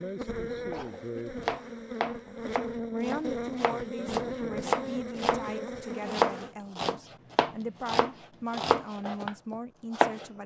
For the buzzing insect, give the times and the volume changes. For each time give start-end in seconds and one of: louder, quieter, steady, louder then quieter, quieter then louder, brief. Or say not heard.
0.0-6.5 steady.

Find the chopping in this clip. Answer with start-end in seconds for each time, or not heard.
0.7-10.2.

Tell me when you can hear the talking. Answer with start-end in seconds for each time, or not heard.
2.2-10.4.